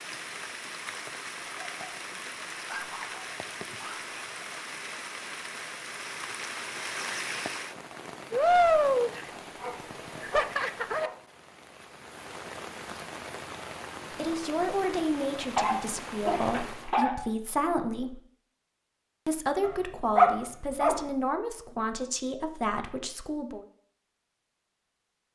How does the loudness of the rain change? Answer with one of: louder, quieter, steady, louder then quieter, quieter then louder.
louder then quieter.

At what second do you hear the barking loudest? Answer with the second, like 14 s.
20 s.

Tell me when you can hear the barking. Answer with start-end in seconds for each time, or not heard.
1.4-4.0, 9.4-11.2, 15.6-17.2, 19.6-21.0.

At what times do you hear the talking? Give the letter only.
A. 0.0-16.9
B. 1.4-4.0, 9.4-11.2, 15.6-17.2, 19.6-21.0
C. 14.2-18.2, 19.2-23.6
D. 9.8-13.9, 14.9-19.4
C.